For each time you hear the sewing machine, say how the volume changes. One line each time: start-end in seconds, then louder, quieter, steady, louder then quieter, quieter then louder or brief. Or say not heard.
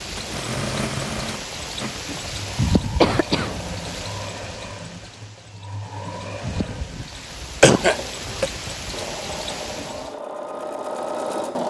0.1-11.6 quieter then louder.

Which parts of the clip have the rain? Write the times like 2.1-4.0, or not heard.
0.0-10.1.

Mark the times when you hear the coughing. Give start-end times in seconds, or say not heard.
3.0-3.5, 7.6-8.5.